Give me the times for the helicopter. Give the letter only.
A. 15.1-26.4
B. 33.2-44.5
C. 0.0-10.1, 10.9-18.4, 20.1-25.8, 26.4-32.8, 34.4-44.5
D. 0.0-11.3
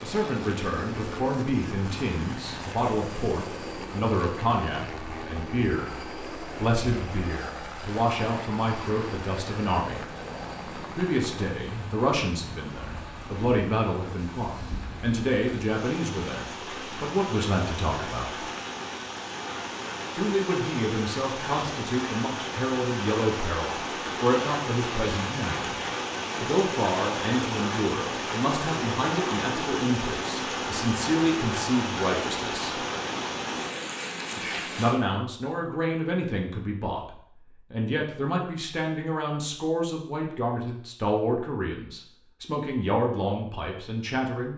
D.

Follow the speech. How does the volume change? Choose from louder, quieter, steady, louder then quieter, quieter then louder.
steady.